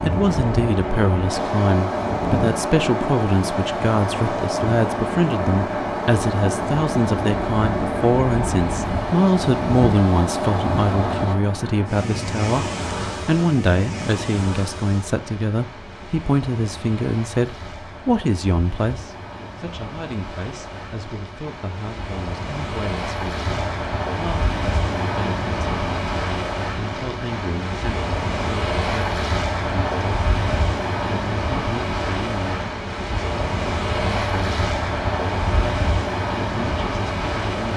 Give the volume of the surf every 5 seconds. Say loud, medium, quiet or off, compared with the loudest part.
loud, loud, loud, quiet, medium, loud, loud, loud.